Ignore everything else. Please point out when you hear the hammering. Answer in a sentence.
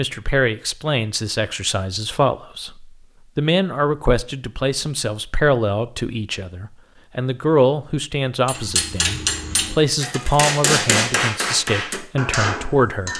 You can hear the hammering from 8.4 to 13.1 s.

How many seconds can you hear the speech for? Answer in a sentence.
You can hear the speech for 13 seconds altogether.